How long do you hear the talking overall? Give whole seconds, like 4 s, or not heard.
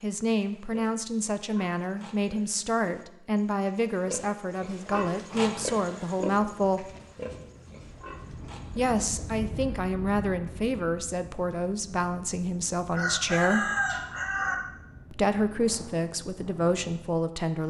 14 s.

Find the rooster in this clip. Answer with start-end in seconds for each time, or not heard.
12.9-14.6.